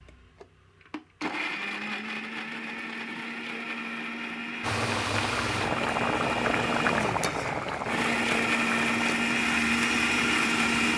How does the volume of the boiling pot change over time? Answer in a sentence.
The volume of the boiling pot goes down.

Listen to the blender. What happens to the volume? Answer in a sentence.
The volume of the blender goes up.